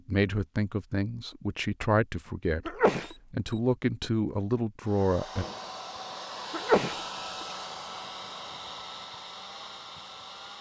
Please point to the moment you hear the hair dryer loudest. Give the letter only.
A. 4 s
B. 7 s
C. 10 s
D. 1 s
B.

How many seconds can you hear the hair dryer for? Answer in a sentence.
You can hear the hair dryer for 6 seconds altogether.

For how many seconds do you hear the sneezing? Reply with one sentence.
The sneezing can be heard for 2 seconds in total.